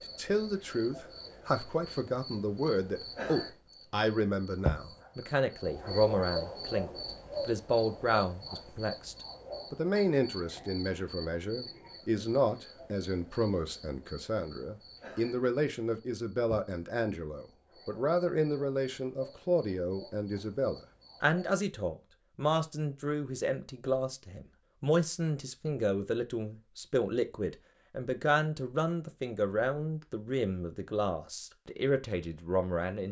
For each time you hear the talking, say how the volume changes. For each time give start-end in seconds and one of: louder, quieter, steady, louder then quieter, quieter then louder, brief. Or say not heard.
0.1-33.0 steady.